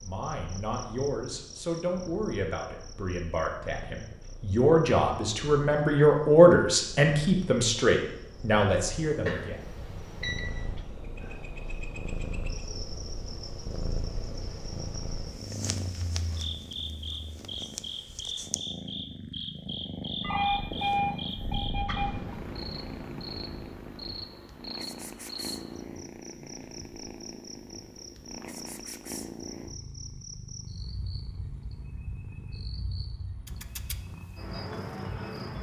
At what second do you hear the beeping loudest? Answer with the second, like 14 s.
21 s.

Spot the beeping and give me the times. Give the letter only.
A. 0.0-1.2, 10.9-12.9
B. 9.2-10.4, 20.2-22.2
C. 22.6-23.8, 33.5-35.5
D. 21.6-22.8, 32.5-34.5
B.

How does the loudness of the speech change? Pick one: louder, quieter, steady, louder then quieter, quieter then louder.
louder then quieter.